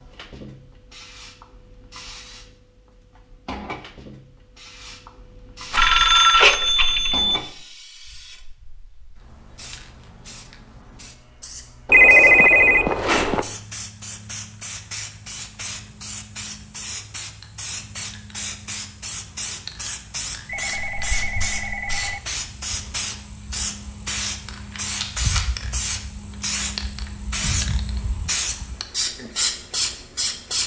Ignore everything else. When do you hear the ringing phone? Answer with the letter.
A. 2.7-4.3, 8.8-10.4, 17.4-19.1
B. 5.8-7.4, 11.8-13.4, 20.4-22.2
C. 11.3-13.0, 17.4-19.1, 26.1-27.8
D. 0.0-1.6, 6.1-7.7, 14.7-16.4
B.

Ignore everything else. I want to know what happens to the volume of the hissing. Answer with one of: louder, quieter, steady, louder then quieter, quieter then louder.
louder.